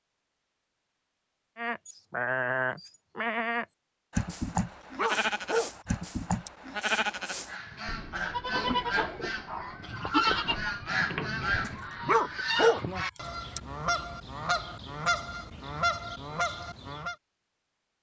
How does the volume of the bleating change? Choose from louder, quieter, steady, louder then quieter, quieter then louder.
steady.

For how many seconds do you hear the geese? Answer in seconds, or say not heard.
10 s.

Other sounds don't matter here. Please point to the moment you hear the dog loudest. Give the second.
13 s.